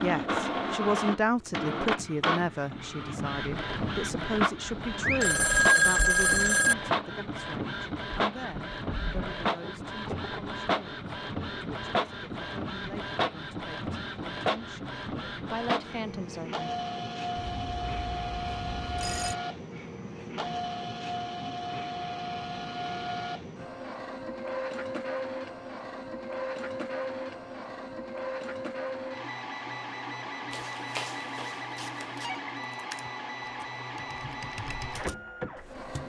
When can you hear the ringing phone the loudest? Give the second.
6 s.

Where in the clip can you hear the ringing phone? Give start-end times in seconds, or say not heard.
5.0-6.8, 17.4-19.4, 30.5-32.4.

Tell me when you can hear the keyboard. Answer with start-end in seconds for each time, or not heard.
32.6-36.0.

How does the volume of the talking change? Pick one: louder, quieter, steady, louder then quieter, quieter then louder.
quieter then louder.